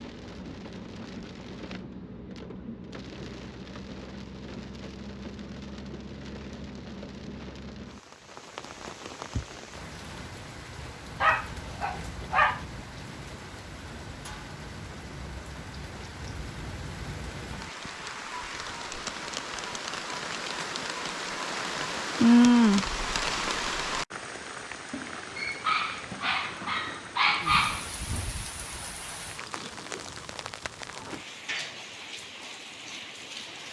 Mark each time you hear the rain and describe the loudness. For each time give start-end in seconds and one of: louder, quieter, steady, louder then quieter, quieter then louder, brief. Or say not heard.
0.0-33.6 louder then quieter.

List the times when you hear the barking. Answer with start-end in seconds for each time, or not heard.
11.2-12.7, 24.9-27.9.